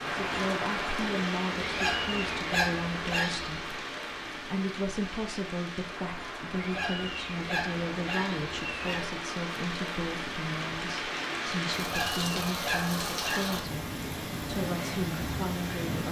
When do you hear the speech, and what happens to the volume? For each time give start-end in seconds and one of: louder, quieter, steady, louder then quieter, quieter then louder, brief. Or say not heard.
0.2-16.0 steady.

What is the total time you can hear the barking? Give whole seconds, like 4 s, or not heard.
6 s.